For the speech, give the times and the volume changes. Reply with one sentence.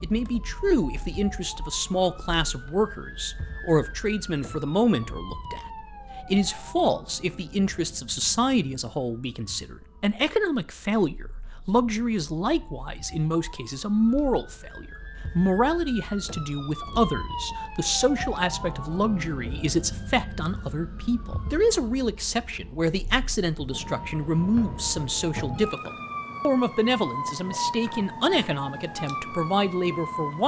You can hear the speech from 0.0 to 30.4 s, at a steady volume.